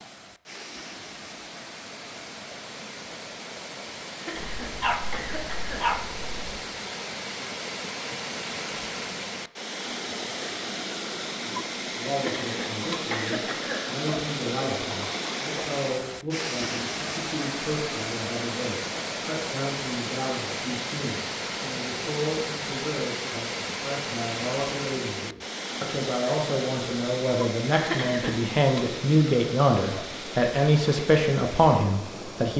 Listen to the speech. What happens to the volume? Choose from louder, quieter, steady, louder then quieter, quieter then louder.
louder.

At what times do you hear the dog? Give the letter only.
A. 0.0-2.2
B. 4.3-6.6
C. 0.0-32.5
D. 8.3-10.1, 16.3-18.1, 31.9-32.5
B.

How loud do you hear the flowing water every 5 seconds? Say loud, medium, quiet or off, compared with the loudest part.
medium, loud, loud, loud, loud, loud, medium.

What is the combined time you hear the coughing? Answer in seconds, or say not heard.
4 s.